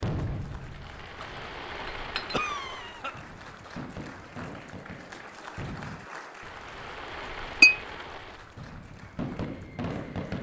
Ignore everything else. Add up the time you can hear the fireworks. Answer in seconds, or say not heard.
10 s.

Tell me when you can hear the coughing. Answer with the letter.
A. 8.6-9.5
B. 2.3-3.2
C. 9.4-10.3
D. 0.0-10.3
B.